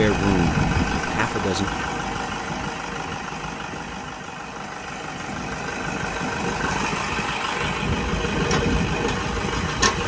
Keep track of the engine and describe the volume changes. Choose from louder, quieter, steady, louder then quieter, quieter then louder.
quieter then louder.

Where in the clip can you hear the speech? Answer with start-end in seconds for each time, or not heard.
0.0-1.6.